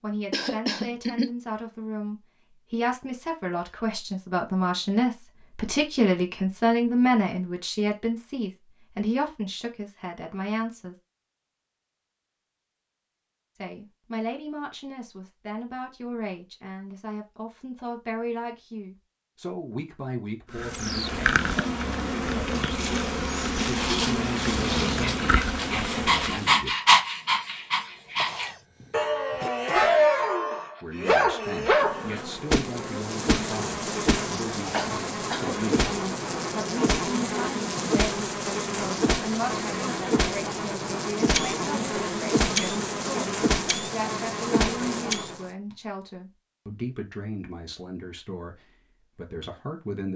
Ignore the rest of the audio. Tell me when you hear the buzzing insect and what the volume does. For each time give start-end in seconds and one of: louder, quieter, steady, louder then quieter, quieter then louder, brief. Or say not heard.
20.5-26.6 steady
31.6-45.5 steady.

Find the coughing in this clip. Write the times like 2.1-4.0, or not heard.
0.3-1.3, 28.1-30.1, 34.7-35.6.